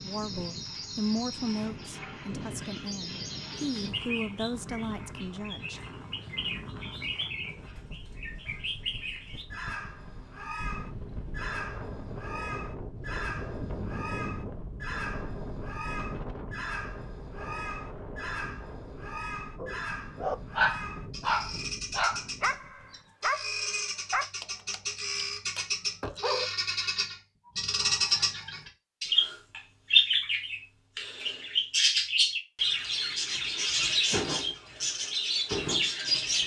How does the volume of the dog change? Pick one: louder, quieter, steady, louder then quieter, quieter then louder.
quieter.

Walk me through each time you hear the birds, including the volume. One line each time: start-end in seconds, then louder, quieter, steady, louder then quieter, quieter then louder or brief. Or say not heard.
0.0-36.4 louder.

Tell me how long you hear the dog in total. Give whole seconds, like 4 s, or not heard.
7 s.